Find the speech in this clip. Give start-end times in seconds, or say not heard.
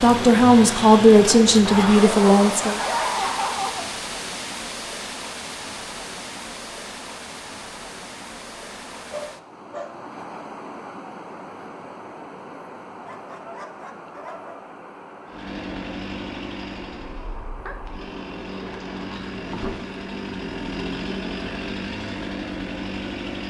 0.0-2.8.